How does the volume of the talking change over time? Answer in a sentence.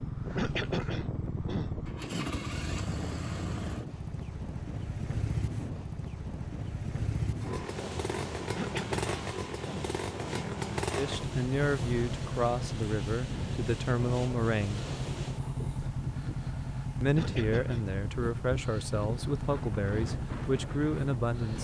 The volume of the talking stays about the same.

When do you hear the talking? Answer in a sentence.
You can hear the talking from 10.9 to 14.8 s and from 17.0 to 21.5 s.